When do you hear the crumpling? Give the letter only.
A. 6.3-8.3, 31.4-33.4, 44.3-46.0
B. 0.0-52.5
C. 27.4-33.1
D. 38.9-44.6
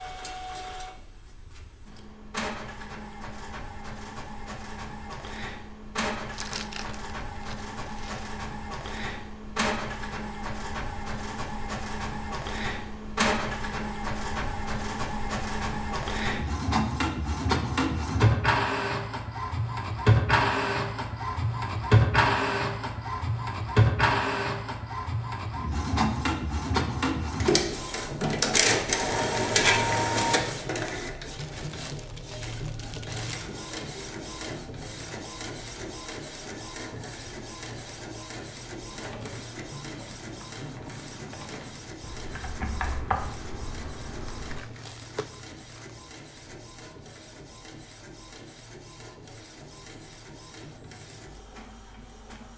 A.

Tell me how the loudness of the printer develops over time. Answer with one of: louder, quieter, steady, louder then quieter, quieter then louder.
louder then quieter.